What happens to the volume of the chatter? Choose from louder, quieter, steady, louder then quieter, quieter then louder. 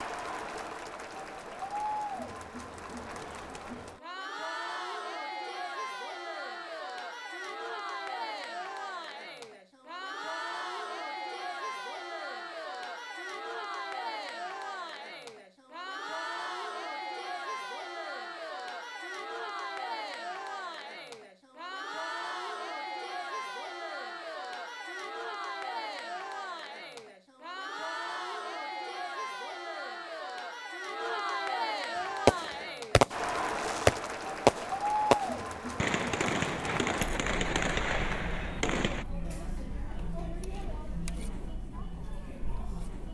steady.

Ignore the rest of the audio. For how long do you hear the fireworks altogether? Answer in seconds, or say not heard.
7 s.